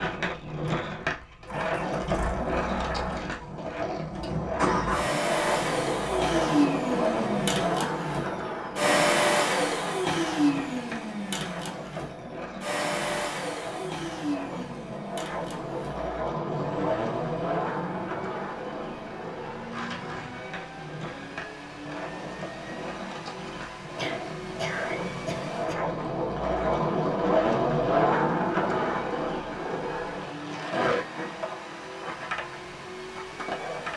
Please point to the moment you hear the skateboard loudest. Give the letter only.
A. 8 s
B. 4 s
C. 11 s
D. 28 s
D.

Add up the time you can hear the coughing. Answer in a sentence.
You can hear the coughing for 2 seconds altogether.